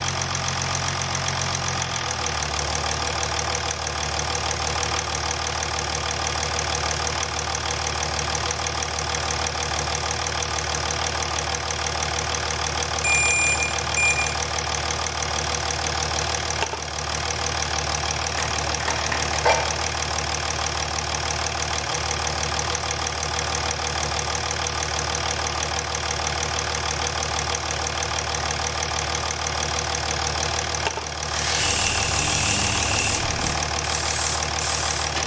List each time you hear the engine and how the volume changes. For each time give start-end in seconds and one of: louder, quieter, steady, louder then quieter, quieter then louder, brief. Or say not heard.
0.0-35.2 steady.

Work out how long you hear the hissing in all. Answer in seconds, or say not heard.
4 s.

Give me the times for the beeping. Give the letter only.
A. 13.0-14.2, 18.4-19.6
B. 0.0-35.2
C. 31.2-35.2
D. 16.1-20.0
A.